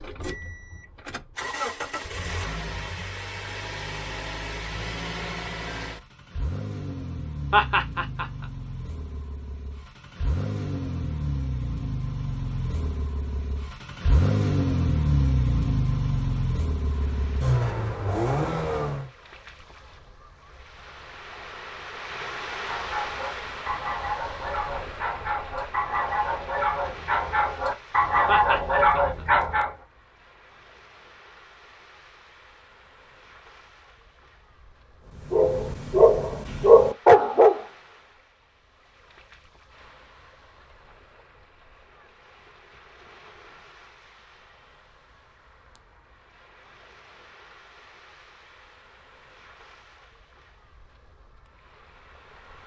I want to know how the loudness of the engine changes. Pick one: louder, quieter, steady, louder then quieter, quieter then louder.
louder.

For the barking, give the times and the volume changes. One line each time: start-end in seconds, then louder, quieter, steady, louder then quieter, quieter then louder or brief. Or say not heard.
22.6-29.7 louder
35.2-37.6 brief.